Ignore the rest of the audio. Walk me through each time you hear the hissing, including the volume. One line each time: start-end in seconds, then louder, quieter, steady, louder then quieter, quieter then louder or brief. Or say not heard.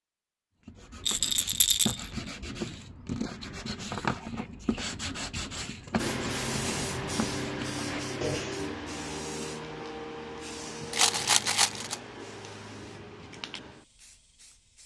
6.0-14.8 quieter.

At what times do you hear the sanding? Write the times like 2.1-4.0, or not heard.
0.7-8.6.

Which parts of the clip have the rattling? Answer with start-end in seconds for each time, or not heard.
1.1-2.1, 10.9-11.9.